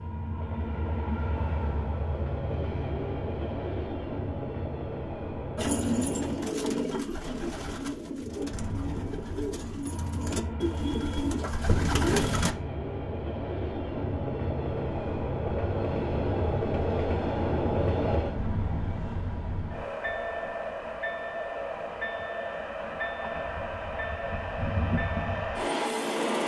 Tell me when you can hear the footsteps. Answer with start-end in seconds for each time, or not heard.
not heard.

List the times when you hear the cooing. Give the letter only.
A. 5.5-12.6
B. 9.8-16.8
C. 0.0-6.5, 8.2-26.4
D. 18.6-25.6
A.